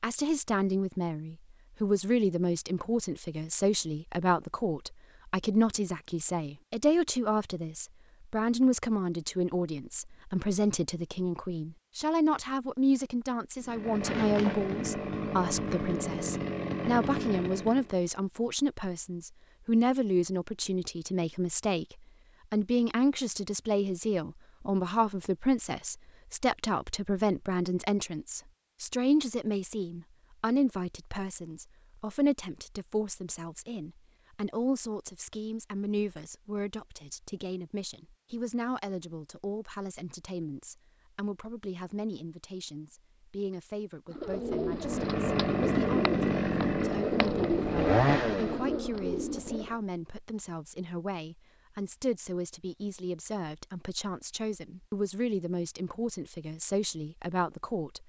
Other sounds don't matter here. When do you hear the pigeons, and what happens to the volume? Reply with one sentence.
The pigeons can be heard from 44.1 to 49.8 s, at a steady volume.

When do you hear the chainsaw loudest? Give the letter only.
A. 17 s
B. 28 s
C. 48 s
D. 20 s
C.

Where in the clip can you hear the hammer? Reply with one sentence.
You can't hear the hammer here.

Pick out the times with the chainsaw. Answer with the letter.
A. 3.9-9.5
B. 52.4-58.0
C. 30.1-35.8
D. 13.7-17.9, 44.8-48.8
D.